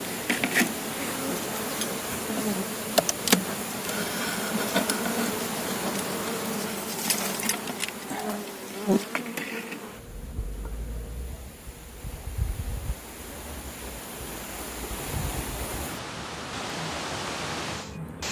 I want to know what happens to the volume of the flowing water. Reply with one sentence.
The loudness of the flowing water goes down, then up.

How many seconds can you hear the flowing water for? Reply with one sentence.
The flowing water can be heard for 18 seconds in total.